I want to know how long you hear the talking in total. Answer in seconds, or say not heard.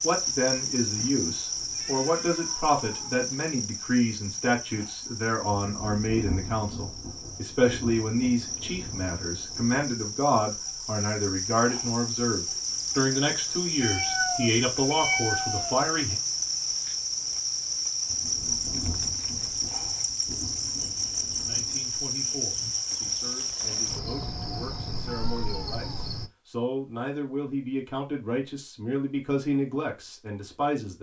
26 s.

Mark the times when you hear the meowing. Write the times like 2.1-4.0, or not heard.
1.7-3.2, 13.8-15.8, 25.1-26.1.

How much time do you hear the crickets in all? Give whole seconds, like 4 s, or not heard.
26 s.